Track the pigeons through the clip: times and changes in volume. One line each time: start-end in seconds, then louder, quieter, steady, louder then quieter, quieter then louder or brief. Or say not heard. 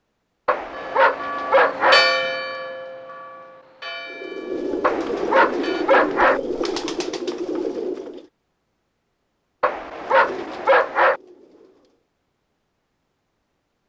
4.0-8.2 steady
9.8-12.1 brief.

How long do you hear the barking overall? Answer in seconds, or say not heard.
5 s.